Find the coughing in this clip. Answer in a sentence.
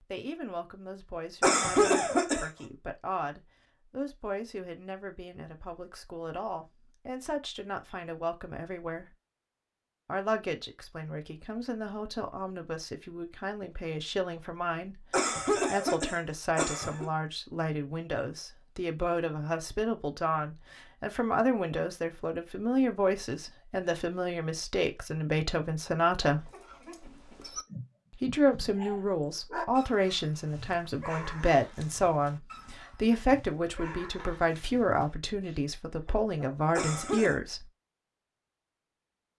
You can hear the coughing from 1.4 to 2.5 s, from 15.1 to 17.1 s and from 36.8 to 37.4 s.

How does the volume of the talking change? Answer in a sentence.
The volume of the talking goes up.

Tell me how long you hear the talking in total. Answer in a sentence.
You can hear the talking for 35 seconds altogether.